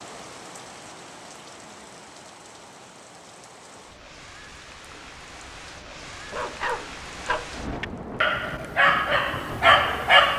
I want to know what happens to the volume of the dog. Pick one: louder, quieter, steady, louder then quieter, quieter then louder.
quieter then louder.